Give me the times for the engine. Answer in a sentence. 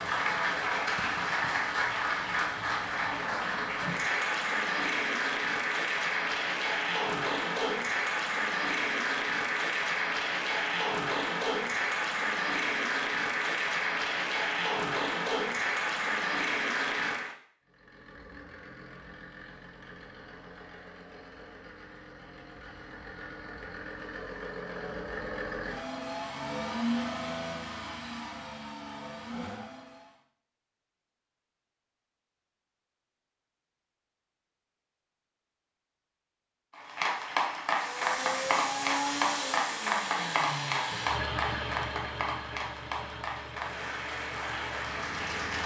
The engine can be heard from 17.6 to 30.2 s and from 37.7 to 45.6 s.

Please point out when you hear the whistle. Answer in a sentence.
You can't hear the whistle here.